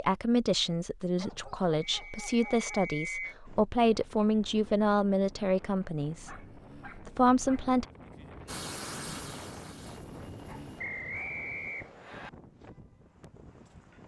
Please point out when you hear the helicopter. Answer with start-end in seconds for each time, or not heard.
8.4-10.8.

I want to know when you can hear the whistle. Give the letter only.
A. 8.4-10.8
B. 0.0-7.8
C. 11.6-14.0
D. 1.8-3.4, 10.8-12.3
D.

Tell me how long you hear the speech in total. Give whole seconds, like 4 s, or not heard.
8 s.